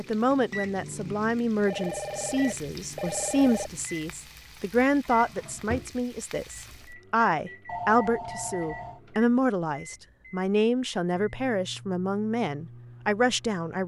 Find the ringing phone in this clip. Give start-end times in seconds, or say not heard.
1.6-3.7, 7.7-9.0.